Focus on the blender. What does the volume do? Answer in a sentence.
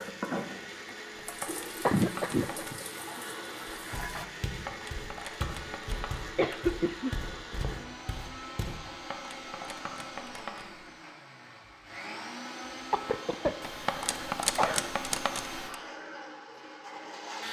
The loudness of the blender stays about the same.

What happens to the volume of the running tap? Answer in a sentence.
The volume of the running tap stays about the same.